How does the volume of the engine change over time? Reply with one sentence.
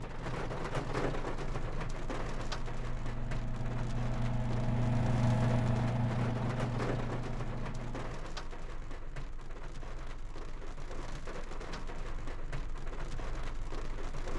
The volume of the engine goes up, then down.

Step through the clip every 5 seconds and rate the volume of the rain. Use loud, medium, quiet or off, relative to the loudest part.
loud, loud, medium.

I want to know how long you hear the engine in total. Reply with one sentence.
You can hear the engine for 8 seconds altogether.